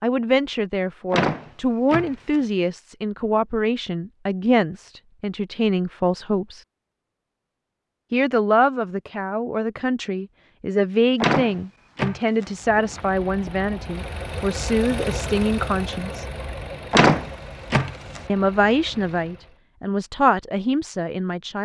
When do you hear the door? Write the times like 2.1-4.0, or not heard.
1.1-2.4, 11.2-12.4, 16.9-18.2.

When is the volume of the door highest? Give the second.
17 s.